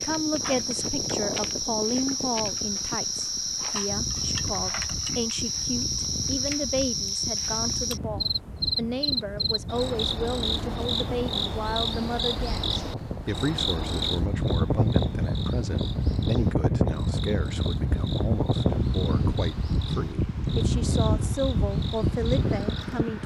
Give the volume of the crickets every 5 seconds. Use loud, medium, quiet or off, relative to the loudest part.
loud, loud, loud, quiet, quiet.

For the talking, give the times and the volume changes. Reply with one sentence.
You can hear the talking from 0.0 to 23.2 s, at a steady volume.